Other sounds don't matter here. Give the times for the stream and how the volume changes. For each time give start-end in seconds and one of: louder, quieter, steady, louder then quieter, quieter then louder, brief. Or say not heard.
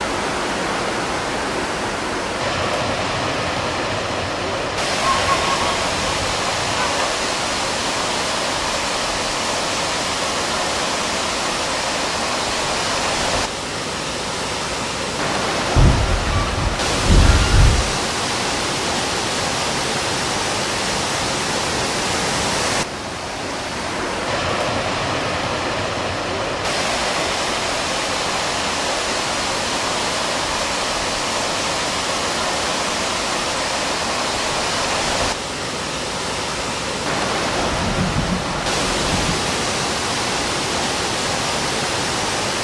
0.0-42.5 steady.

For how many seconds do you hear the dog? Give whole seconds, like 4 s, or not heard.
not heard.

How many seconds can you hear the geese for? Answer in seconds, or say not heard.
6 s.